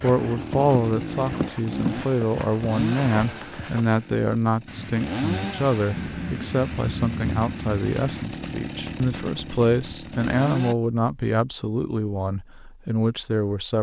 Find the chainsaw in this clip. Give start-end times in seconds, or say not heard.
0.1-10.8.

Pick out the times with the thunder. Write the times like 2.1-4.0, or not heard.
4.7-8.2.